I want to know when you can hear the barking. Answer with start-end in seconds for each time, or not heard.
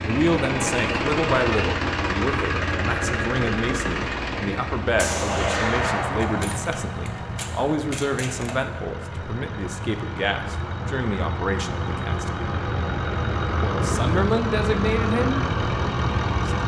not heard.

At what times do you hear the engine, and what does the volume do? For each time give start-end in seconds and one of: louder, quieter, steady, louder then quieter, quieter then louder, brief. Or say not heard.
0.0-16.6 quieter then louder.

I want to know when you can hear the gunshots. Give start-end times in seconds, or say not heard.
5.0-8.6.